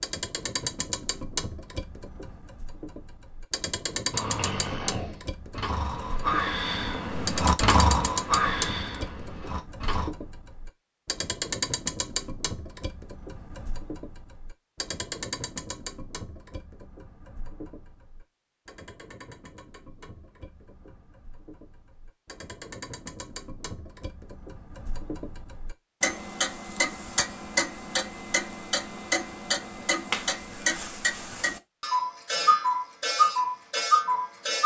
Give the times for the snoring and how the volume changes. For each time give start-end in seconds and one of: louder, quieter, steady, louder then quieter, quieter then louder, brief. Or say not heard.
4.1-10.1 louder then quieter.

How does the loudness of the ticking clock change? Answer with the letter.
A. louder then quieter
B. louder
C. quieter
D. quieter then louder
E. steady
D.